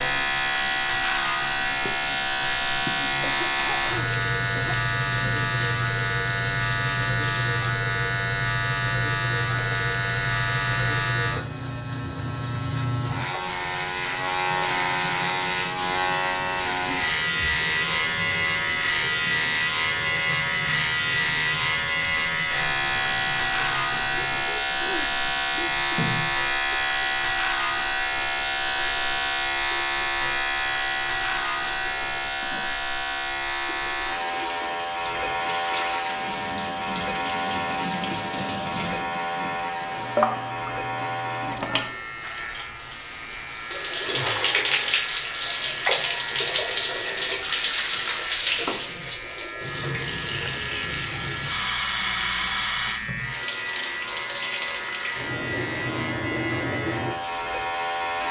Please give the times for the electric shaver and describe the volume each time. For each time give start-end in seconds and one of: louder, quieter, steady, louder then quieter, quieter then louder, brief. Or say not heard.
0.0-58.2 quieter.